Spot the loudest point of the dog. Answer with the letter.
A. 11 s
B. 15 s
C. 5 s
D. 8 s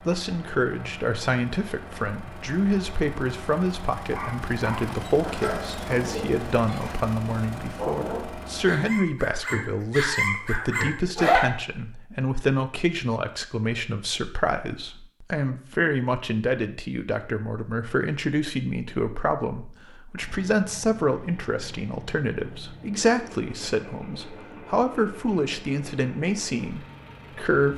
A.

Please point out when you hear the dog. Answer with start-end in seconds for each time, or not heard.
4.1-11.4.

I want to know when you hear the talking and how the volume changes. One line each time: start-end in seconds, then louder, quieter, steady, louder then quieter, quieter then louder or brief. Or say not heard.
0.1-27.7 steady.